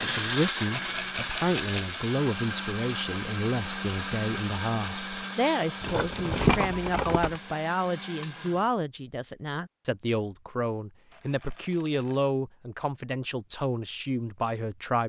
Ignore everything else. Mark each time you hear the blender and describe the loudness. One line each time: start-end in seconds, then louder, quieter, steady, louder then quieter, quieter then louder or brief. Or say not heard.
0.0-8.7 quieter.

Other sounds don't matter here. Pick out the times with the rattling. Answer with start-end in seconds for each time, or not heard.
0.8-2.0, 5.8-7.4, 11.1-12.2.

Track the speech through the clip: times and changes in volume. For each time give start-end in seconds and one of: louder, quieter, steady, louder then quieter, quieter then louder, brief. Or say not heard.
0.0-15.0 steady.